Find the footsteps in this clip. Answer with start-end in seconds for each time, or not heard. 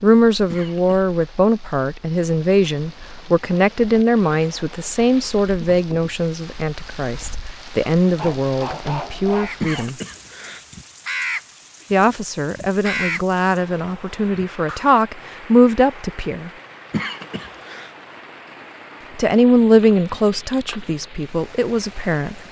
not heard.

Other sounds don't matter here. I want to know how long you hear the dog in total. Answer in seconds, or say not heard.
2 s.